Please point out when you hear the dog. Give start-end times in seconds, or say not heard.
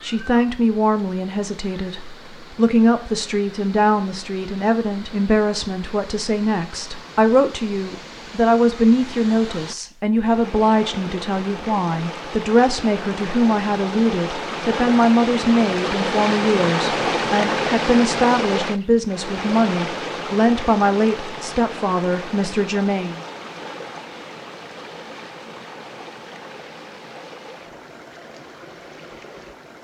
not heard.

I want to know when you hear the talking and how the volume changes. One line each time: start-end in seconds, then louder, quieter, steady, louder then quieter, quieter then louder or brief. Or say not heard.
0.0-23.2 steady.